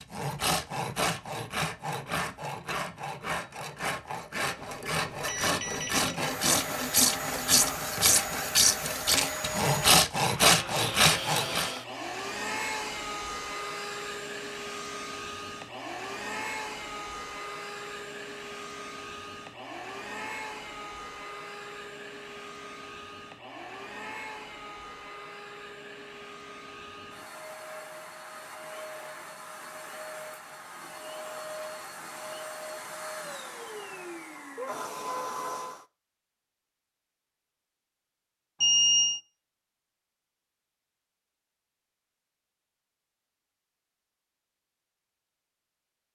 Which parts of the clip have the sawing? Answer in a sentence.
You can hear the sawing from 0.0 to 11.8 s.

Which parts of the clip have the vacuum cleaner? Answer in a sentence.
The vacuum cleaner can be heard from 6.2 to 35.9 s.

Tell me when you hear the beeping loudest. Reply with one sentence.
The loudest moment of the beeping is at 39 seconds.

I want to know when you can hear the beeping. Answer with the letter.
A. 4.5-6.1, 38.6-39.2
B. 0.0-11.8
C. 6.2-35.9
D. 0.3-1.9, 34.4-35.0
A.